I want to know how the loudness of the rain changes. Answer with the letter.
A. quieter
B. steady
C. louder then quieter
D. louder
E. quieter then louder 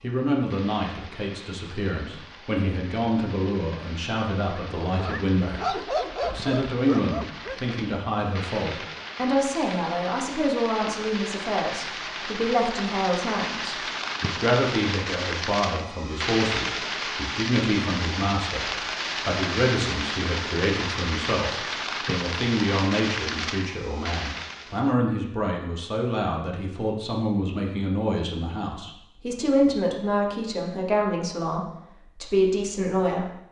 D.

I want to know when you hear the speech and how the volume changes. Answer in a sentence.
The speech can be heard from 0.0 to 33.4 s, at a steady volume.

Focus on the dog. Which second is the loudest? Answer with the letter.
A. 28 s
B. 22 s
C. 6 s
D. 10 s
C.